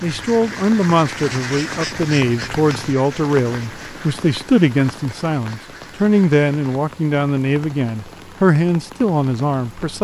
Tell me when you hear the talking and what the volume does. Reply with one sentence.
You can hear the talking from 0.0 to 9.9 s, at a steady volume.